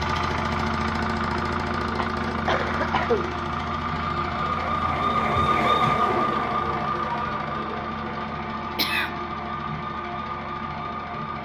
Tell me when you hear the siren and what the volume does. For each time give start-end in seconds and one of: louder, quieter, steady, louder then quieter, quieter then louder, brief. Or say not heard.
0.0-11.4 louder then quieter.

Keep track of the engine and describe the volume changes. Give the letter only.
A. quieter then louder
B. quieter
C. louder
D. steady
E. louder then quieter
B.